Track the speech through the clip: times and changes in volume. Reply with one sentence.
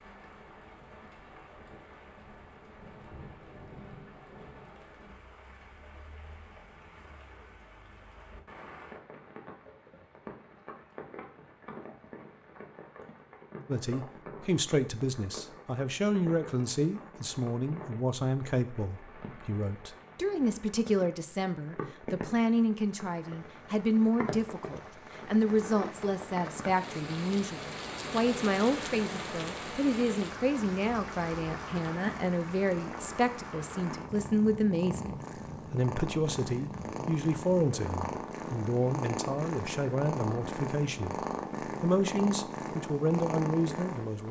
The speech can be heard from 13.7 to 44.2 s, at a steady volume.